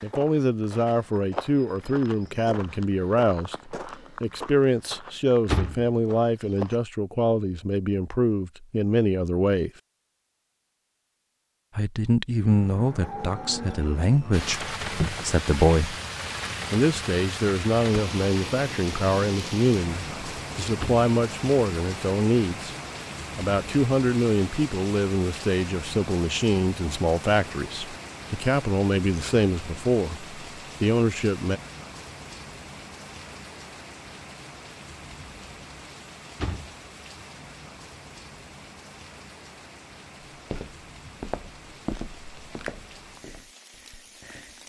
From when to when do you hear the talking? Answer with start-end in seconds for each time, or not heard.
0.0-9.7, 11.8-15.9, 16.7-22.8, 23.4-31.6.